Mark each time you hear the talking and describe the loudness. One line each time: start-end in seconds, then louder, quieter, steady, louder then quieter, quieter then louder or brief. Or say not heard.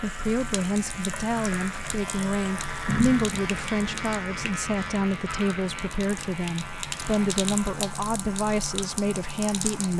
0.0-9.9 steady.